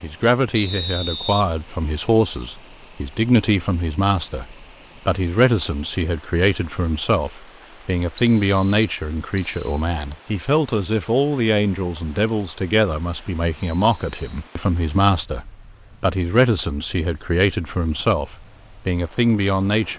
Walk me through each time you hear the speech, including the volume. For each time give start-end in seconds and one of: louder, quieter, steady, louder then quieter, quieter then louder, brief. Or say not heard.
0.0-19.9 steady.